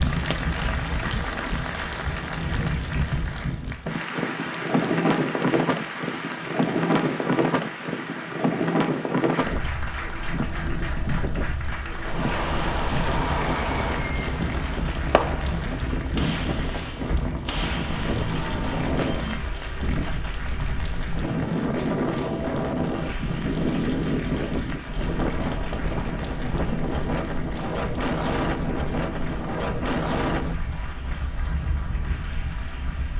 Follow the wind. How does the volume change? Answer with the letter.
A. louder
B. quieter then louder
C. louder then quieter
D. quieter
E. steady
E.